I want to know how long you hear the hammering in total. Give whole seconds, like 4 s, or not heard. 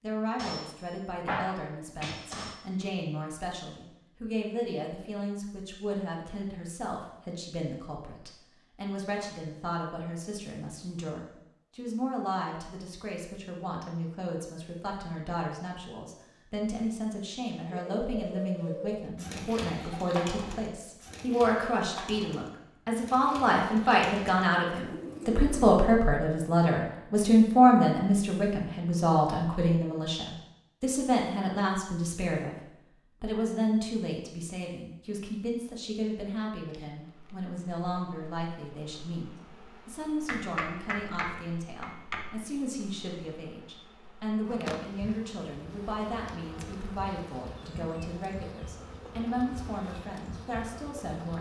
4 s.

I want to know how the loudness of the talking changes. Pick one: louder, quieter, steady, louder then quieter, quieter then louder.
louder then quieter.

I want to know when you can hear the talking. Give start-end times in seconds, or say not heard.
0.0-51.3.